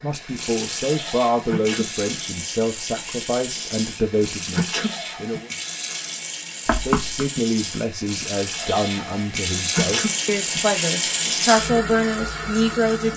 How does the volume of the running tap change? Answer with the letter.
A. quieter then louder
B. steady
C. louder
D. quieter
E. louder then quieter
C.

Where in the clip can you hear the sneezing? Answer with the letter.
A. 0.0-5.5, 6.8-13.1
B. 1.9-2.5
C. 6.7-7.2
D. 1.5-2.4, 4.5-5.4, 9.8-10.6
D.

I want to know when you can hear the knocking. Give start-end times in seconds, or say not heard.
6.7-7.2.